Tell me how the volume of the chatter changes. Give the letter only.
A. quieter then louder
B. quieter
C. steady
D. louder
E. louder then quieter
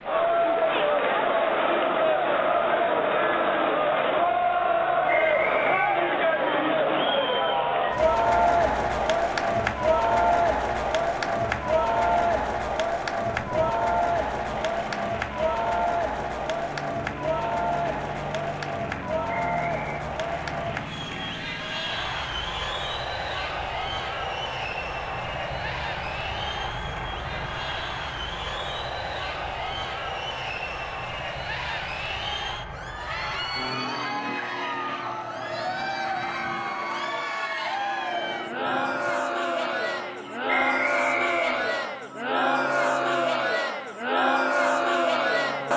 A.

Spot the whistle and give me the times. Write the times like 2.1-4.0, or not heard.
5.0-6.0, 19.3-20.0, 40.5-41.8.